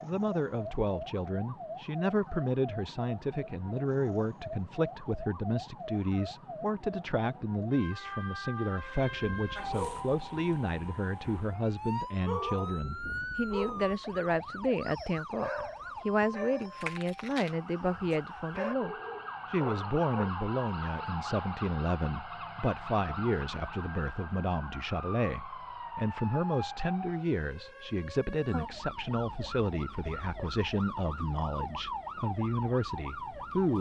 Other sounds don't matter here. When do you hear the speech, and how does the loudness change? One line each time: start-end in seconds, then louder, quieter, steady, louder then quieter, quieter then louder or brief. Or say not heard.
0.0-33.7 steady.